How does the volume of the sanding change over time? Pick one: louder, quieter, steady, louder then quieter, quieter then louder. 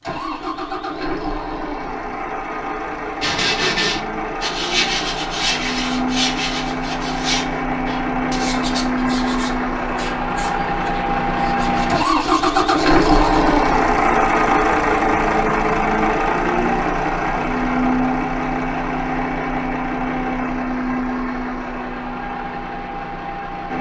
quieter.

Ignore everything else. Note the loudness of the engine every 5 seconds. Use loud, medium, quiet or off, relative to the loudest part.
medium, medium, loud, loud, medium.